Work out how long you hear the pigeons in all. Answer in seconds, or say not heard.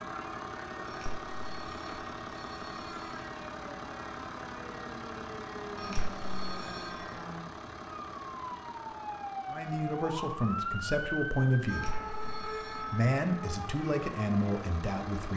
not heard.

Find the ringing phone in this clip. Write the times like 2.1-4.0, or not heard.
0.8-3.2, 5.8-7.1, 11.7-13.0.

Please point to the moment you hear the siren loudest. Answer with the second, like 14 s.
11 s.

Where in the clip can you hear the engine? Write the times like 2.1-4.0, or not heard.
0.0-15.3.